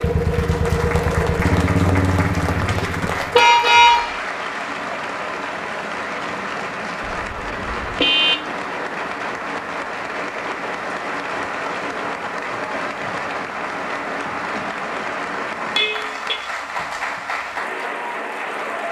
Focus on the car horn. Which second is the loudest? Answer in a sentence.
The loudest moment of the car horn is at 4 seconds.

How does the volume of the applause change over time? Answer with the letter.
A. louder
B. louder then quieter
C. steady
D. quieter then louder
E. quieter
C.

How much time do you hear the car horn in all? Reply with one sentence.
You can hear the car horn for 4 seconds altogether.